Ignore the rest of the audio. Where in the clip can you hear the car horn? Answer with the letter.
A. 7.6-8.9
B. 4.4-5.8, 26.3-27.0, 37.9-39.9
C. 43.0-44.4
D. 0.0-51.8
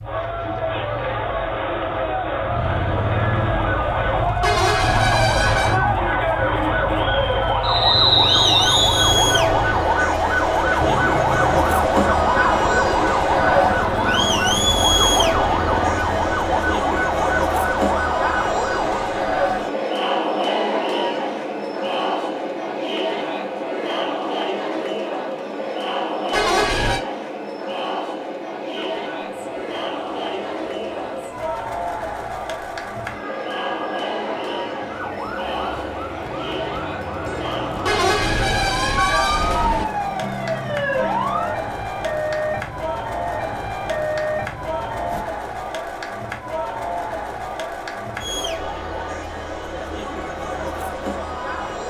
B.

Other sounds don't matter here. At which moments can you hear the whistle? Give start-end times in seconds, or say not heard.
7.6-8.9.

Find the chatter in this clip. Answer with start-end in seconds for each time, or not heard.
0.0-51.8.